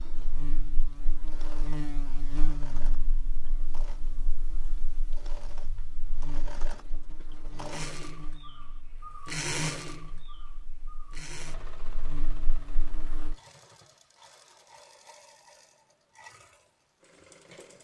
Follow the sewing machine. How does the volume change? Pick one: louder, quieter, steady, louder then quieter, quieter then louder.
louder then quieter.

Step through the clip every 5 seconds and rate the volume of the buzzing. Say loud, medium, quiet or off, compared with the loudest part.
loud, medium, medium, off.